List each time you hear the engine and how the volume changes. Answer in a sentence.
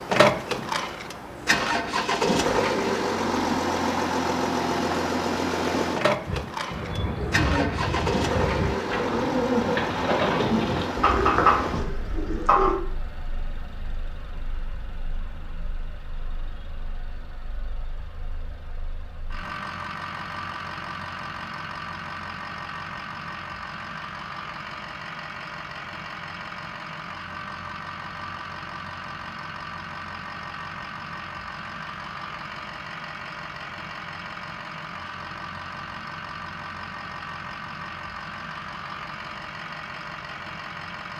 You can hear the engine from 0.0 to 41.1 s, getting quieter.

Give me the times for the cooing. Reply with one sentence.
The cooing can be heard from 6.2 to 12.8 s.